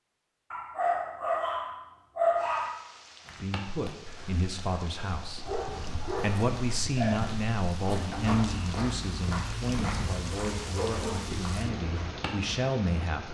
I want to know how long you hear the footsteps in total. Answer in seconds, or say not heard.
9 s.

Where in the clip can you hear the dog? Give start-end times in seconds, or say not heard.
0.5-2.8, 5.4-7.3, 9.9-11.2.